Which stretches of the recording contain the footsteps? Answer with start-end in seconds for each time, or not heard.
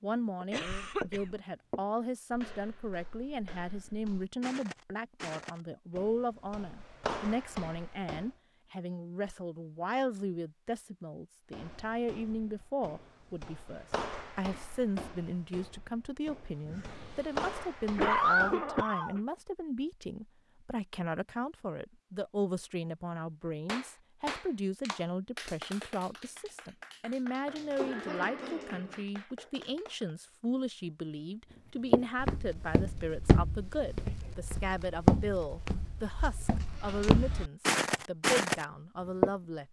0.4-8.3, 11.5-18.7, 31.9-39.3.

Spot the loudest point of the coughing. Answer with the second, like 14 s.
18 s.